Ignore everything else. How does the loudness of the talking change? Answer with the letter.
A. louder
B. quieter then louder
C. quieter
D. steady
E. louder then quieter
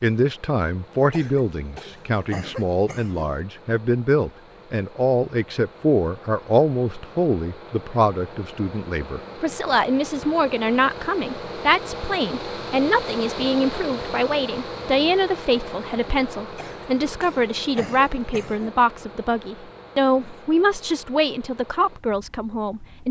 D.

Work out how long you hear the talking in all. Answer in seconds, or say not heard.
23 s.